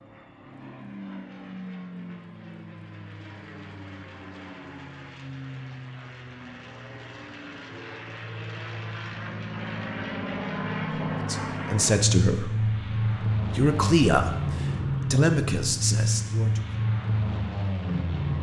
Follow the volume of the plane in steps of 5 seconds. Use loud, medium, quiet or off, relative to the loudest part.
quiet, medium, loud, loud.